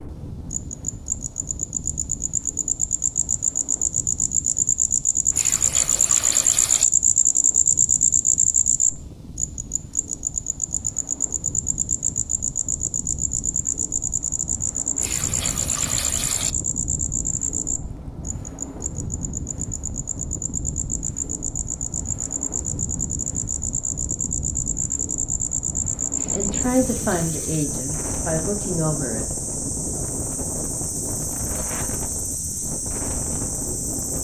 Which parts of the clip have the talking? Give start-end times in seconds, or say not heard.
26.3-29.2.